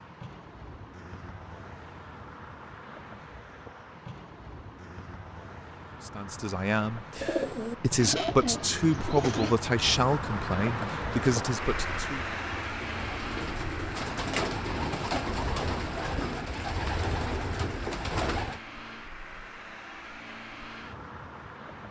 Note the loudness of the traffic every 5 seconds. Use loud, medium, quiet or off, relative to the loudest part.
medium, medium, loud, medium, medium.